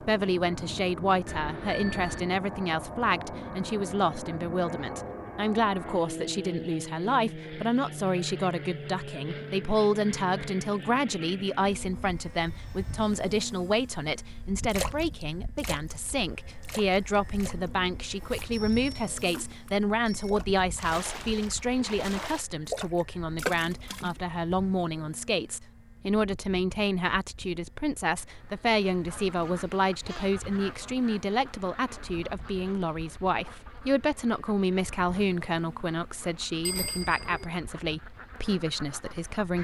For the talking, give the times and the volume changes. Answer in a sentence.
You can hear the talking from 0.0 to 39.5 s, at a steady volume.